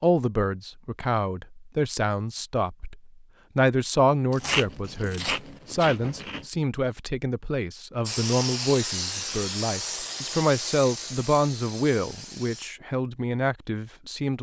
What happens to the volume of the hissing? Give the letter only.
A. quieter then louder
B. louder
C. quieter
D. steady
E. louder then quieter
C.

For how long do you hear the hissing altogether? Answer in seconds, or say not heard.
5 s.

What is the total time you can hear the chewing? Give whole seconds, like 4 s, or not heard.
2 s.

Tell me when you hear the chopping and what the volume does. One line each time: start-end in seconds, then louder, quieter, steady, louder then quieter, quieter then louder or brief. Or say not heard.
not heard.